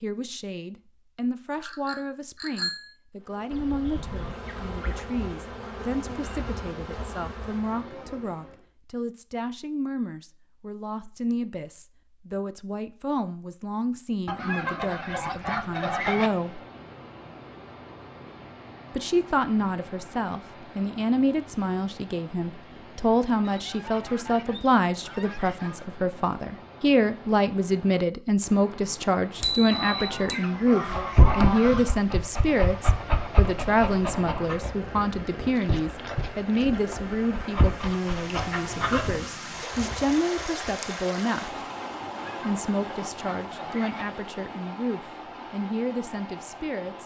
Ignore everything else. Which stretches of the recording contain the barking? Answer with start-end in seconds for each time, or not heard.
30.9-39.2.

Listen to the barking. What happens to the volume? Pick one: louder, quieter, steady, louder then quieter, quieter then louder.
quieter then louder.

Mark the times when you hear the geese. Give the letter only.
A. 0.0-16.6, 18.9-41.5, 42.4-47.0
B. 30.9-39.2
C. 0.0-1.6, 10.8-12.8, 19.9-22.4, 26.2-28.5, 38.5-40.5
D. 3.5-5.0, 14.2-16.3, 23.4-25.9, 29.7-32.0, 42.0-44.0
D.